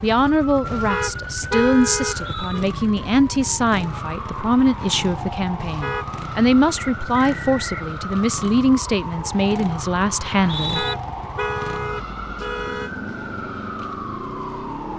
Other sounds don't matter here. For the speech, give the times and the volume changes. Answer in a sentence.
The speech can be heard from 0.0 to 10.8 s, at a steady volume.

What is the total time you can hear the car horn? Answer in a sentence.
You can hear the car horn for 5 seconds altogether.